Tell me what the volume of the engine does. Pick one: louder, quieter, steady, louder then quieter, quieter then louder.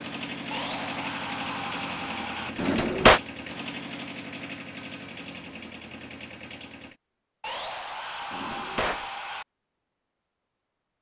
quieter.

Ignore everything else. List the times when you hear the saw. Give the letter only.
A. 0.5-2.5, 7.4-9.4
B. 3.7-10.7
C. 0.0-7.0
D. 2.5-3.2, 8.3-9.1
A.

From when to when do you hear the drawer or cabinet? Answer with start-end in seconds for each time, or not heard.
2.5-3.2, 8.3-9.1.